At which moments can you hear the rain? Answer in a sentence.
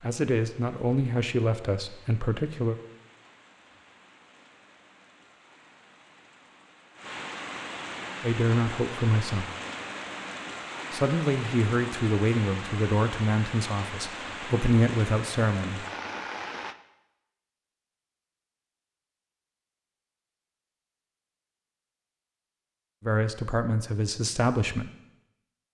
The rain can be heard from 0.0 to 16.8 s.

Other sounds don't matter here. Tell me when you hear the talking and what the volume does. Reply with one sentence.
The talking can be heard briefly from 0.0 to 2.8 s; briefly from 8.2 to 9.5 s; from 10.9 to 15.8 s, getting quieter then louder; and briefly from 23.0 to 24.9 s.